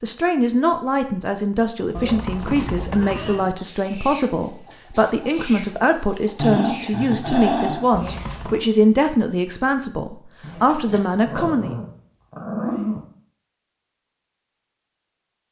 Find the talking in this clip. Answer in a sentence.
The talking can be heard from 0.0 to 11.8 s.